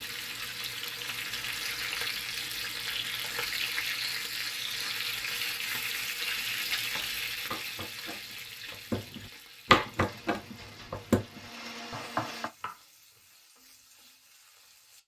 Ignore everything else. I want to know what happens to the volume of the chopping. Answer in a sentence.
The volume of the chopping goes up, then down.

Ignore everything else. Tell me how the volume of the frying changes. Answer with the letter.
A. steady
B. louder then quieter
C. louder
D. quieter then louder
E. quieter
E.